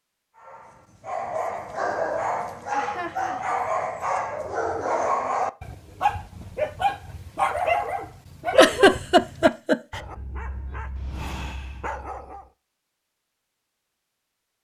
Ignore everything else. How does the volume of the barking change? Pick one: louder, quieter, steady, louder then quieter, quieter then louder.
quieter.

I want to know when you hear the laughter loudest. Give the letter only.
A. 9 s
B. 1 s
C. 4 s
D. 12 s
A.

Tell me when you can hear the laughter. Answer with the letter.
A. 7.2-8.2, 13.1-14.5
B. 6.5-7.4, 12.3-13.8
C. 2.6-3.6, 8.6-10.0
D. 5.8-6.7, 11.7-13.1
C.